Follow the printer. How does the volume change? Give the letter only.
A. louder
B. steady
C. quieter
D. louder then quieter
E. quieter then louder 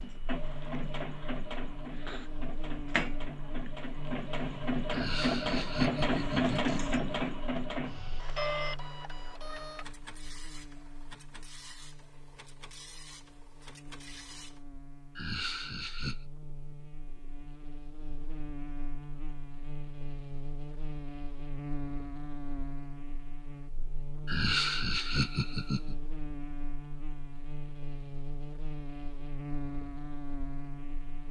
D.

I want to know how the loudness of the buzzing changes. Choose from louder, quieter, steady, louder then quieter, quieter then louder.
quieter then louder.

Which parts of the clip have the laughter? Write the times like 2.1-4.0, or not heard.
4.8-6.8, 15.2-16.2, 24.2-25.9.